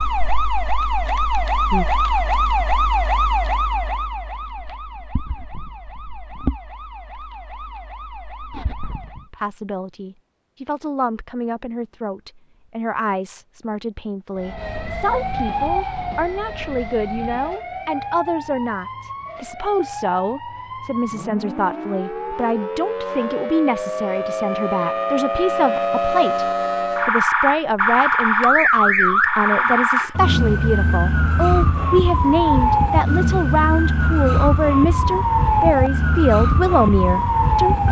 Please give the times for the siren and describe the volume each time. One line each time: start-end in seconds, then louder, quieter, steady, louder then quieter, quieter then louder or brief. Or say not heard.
0.0-9.3 quieter
14.3-37.8 louder.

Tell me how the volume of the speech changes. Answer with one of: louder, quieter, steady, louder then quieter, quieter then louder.
louder.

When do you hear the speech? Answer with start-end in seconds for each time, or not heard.
9.1-37.8.